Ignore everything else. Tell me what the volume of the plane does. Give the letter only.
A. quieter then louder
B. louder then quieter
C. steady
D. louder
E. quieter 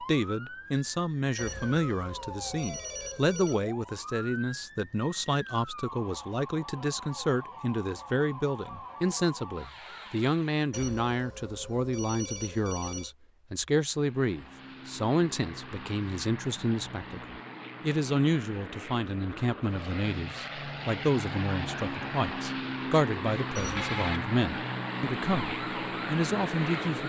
D.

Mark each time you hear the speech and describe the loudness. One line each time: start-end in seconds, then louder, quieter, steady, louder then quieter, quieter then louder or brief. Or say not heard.
0.0-27.0 steady.